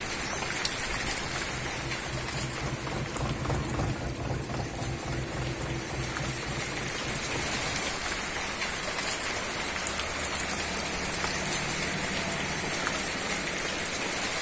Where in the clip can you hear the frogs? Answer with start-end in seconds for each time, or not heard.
not heard.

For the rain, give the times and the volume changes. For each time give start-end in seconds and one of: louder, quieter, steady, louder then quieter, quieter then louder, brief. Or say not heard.
0.0-14.3 quieter then louder.